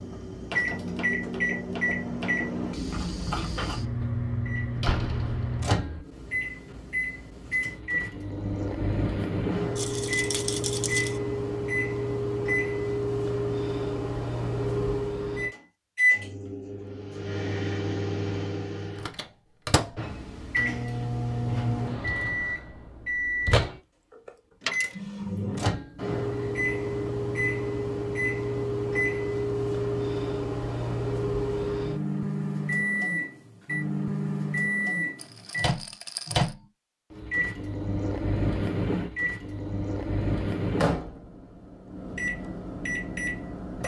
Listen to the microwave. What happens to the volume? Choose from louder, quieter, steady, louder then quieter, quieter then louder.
steady.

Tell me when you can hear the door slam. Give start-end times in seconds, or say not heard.
4.8-6.0.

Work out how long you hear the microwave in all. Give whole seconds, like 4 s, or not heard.
44 s.